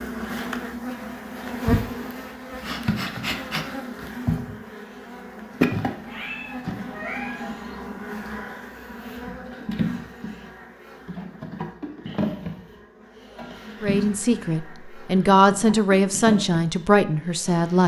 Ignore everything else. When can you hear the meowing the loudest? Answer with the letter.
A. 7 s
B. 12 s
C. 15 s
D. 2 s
A.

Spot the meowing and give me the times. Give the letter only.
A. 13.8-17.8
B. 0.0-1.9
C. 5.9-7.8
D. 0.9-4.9
C.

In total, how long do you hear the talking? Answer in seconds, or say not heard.
4 s.